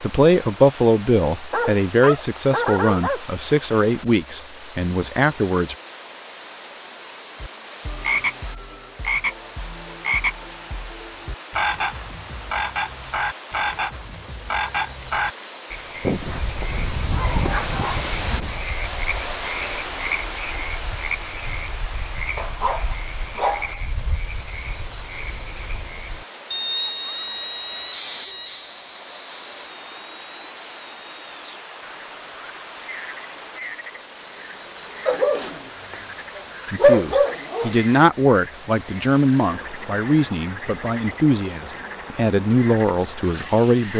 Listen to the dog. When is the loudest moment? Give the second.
37 s.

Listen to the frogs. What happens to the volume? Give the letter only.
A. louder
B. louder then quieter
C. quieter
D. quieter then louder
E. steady
C.